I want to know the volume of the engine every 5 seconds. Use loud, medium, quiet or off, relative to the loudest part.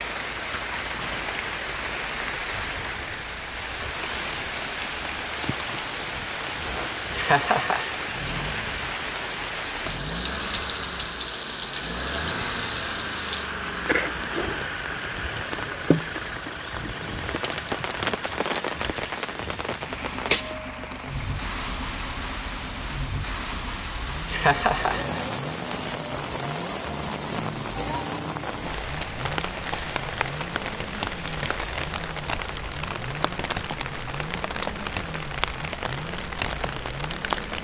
medium, medium, loud, loud, medium, medium, medium, medium.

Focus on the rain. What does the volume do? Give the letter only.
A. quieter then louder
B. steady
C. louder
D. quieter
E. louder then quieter
B.